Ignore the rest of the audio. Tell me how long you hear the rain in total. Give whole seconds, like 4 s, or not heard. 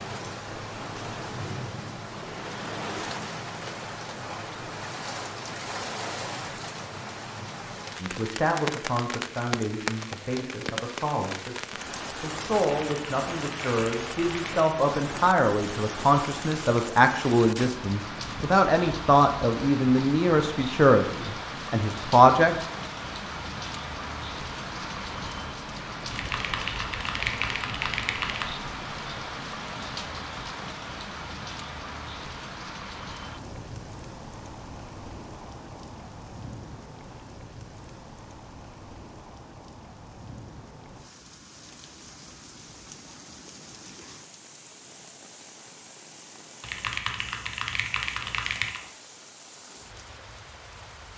51 s.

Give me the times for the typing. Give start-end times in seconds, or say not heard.
12.6-14.8, 26.1-28.5, 46.6-48.8.